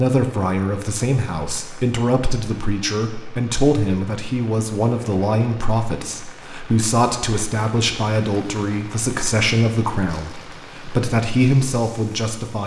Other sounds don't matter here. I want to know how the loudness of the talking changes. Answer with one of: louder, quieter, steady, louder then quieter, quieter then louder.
steady.